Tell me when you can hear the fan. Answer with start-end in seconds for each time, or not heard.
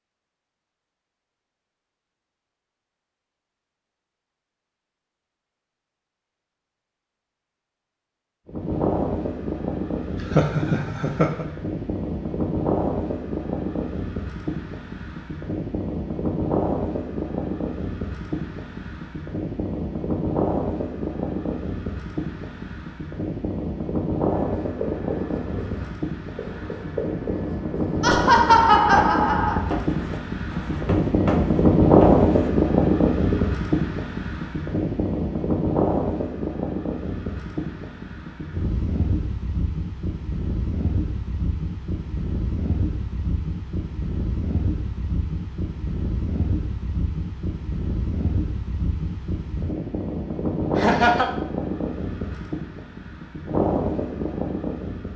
8.4-55.1.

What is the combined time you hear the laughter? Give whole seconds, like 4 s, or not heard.
3 s.